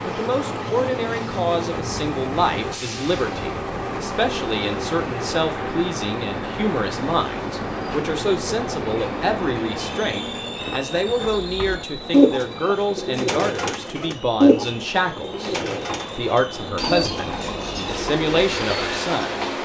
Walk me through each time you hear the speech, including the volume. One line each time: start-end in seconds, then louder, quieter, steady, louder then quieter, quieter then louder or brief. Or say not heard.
0.1-19.4 steady.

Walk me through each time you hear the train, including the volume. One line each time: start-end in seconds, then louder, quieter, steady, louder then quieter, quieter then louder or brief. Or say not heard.
0.0-19.6 quieter then louder.